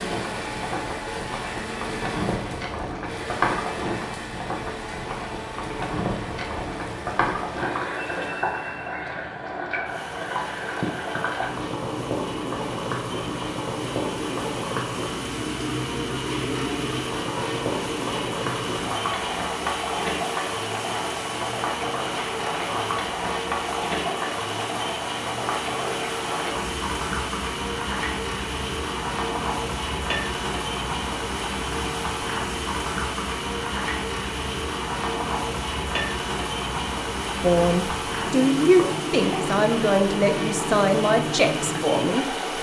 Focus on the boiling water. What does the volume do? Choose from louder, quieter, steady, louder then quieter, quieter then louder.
steady.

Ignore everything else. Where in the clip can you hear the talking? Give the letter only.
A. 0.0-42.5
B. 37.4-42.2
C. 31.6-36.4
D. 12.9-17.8
B.